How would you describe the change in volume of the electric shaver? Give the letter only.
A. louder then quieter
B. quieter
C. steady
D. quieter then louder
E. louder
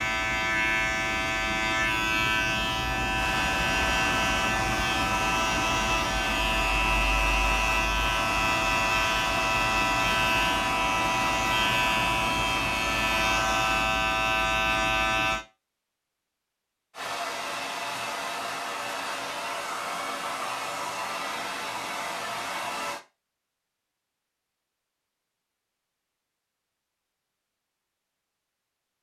C.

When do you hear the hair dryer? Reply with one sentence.
You can hear the hair dryer from 3.2 to 13.9 s and from 16.9 to 23.0 s.